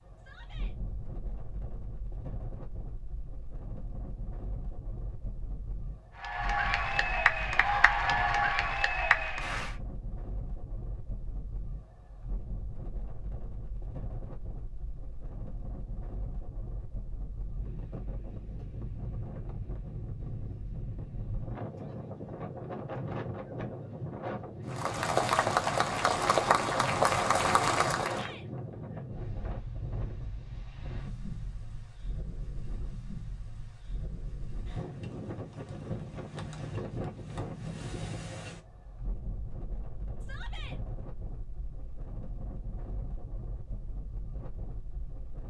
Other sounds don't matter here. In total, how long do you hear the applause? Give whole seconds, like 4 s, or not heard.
7 s.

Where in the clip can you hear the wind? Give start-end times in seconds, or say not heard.
0.0-45.4.